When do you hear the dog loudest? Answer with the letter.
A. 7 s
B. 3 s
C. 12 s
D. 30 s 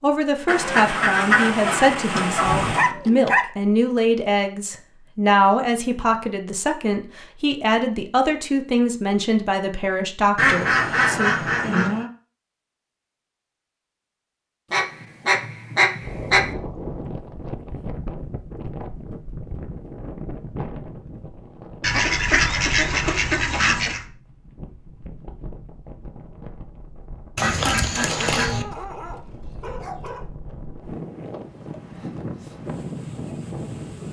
B.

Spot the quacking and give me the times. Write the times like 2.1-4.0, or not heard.
0.5-2.9, 10.3-12.1, 14.7-16.4, 21.8-24.0, 27.4-28.6.